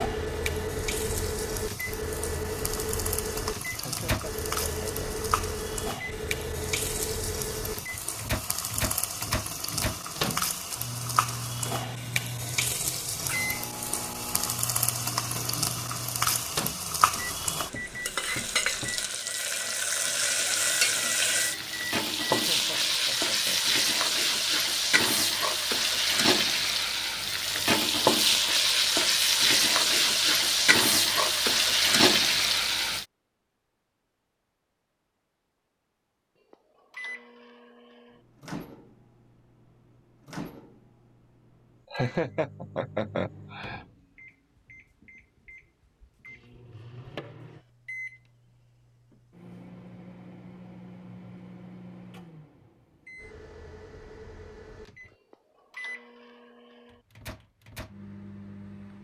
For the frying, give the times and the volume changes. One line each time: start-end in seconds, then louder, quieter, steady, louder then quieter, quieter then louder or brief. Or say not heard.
0.0-33.0 louder.